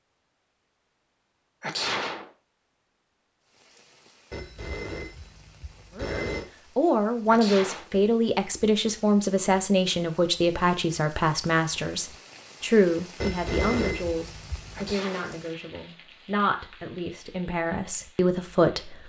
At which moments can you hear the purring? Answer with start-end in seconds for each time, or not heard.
not heard.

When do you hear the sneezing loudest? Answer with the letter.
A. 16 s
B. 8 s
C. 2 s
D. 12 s
C.